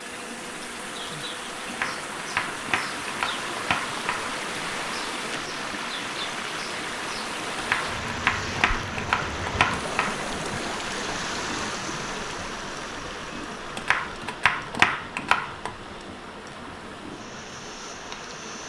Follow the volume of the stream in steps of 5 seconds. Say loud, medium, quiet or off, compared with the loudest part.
loud, loud, loud, medium.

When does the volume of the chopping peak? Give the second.
15 s.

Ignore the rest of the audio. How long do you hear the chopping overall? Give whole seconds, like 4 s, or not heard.
7 s.